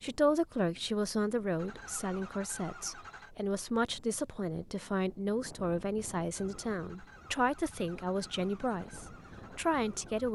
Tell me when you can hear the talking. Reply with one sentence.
You can hear the talking from 0.0 to 10.2 s.